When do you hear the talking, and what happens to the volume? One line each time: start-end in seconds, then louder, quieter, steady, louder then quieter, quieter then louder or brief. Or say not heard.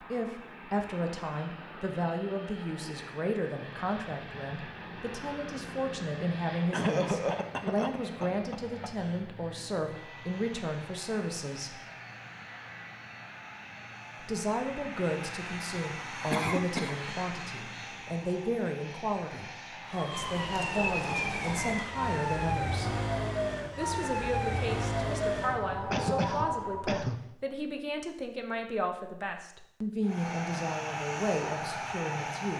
0.0-11.8 steady
14.2-22.9 steady
23.8-32.5 steady.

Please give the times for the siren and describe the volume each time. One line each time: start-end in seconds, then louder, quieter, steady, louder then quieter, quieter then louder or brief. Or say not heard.
19.8-27.0 steady.